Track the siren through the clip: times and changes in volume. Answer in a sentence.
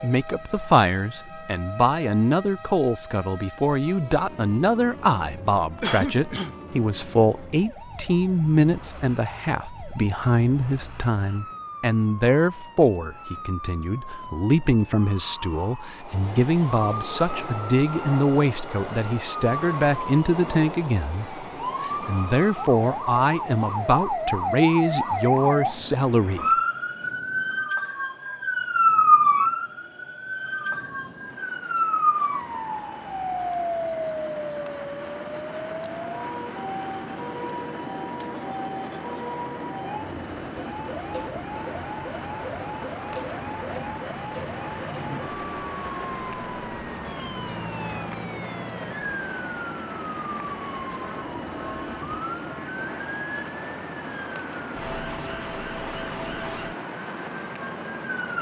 The siren can be heard from 0.0 to 58.3 s, getting louder then quieter.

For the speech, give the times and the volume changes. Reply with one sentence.
The speech can be heard from 0.0 to 26.4 s, at a steady volume.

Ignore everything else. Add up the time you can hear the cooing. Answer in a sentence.
You can't hear the cooing here.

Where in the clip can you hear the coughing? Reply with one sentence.
The coughing can be heard from 5.8 to 6.5 s.